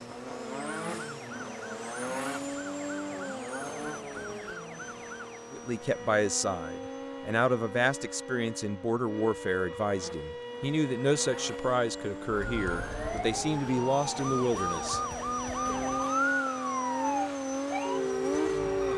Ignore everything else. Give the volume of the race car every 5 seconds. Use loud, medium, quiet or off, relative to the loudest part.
loud, medium, medium, loud.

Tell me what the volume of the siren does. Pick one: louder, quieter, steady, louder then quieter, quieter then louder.
louder.